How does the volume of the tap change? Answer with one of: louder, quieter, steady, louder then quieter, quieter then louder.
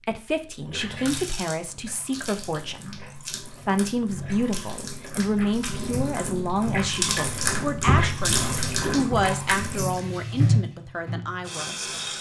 louder.